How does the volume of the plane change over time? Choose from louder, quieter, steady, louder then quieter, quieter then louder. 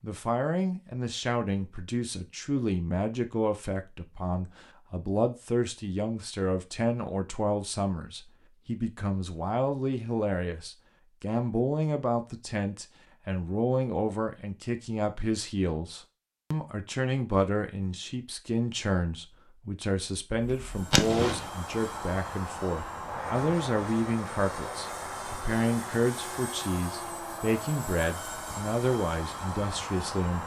steady.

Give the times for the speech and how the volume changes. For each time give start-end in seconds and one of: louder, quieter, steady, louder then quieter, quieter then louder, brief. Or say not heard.
0.0-30.4 steady.